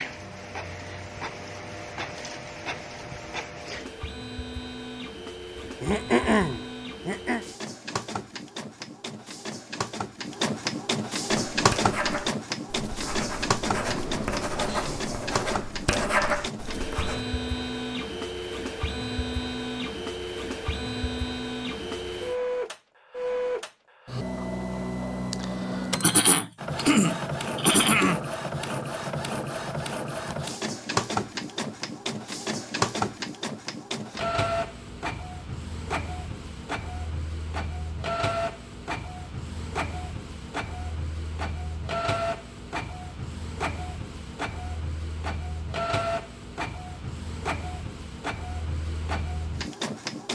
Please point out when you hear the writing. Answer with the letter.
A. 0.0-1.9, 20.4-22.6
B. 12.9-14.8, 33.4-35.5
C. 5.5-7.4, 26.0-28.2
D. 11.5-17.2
D.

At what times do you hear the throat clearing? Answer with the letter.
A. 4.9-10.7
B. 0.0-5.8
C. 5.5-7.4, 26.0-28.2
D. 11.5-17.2
C.